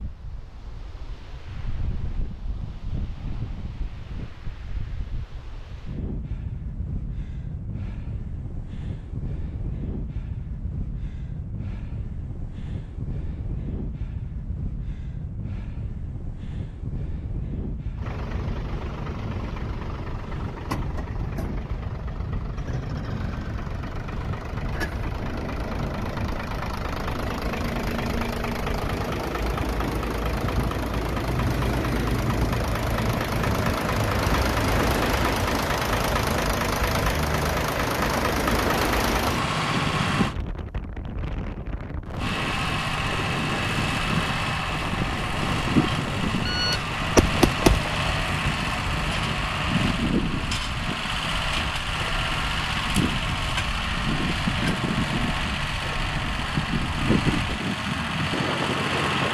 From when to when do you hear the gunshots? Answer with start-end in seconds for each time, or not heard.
46.5-48.0.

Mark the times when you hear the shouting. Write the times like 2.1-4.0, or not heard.
not heard.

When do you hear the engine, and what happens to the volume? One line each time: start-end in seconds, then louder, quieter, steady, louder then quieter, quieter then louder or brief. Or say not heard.
17.9-40.4 louder
42.1-59.2 steady.